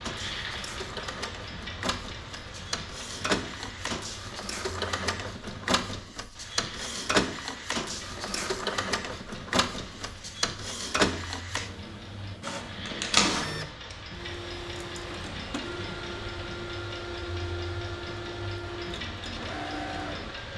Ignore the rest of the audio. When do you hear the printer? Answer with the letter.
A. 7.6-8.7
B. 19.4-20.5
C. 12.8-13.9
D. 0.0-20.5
D.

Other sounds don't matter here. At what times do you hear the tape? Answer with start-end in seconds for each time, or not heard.
12.8-13.9.